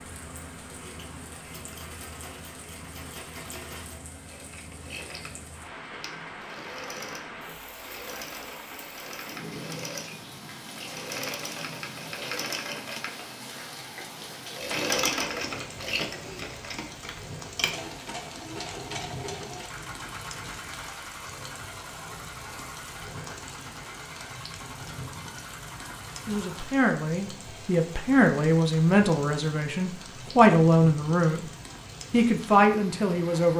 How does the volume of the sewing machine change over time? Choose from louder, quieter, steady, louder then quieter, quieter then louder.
louder then quieter.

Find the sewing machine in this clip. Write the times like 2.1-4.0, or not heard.
0.0-26.8.